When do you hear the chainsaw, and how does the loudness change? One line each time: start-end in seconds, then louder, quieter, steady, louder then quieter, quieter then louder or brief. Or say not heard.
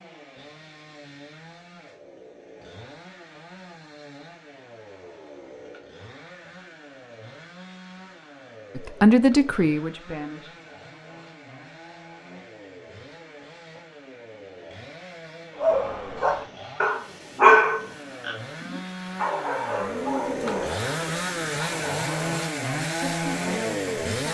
0.0-24.2 louder.